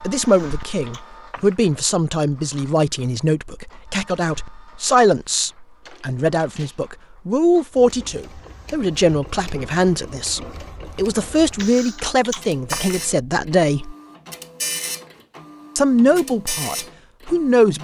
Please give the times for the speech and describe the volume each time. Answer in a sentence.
You can hear the speech from 0.0 to 13.9 s, at a steady volume; and briefly from 15.8 to 17.8 s.